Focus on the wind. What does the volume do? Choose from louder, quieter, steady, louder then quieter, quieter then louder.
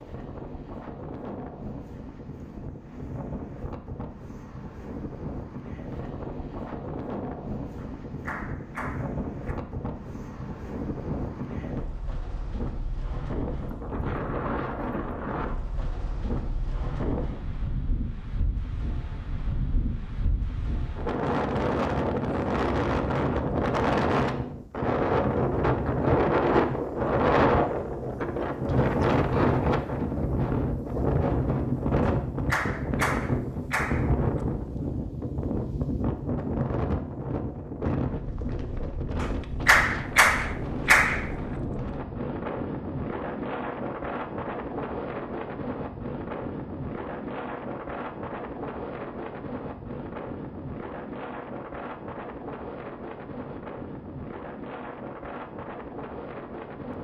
louder then quieter.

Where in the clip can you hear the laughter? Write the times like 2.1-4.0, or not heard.
not heard.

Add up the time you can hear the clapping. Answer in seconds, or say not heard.
6 s.